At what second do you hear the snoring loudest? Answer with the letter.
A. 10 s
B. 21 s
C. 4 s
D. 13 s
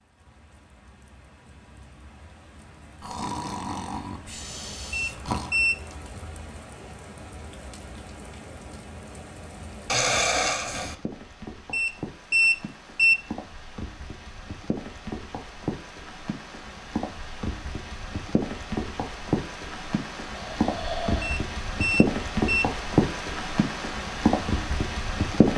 A.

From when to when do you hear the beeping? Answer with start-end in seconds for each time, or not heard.
4.9-5.8, 11.7-13.2, 21.2-22.6.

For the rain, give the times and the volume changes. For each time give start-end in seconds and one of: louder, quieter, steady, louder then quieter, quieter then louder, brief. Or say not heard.
0.0-25.5 louder.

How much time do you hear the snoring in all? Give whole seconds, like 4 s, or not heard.
5 s.